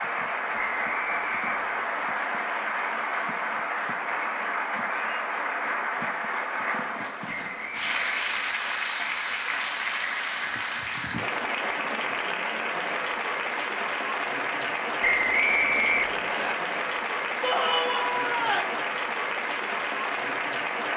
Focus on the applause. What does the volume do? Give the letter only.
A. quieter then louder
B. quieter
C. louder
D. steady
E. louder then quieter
D.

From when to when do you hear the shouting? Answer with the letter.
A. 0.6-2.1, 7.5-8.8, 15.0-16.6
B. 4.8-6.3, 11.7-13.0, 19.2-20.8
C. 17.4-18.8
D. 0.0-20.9
C.